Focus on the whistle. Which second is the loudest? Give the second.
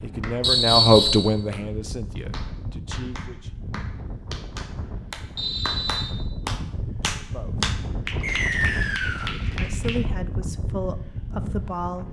1 s.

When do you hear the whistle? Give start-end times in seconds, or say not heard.
0.4-1.2, 5.3-6.2, 8.2-9.3.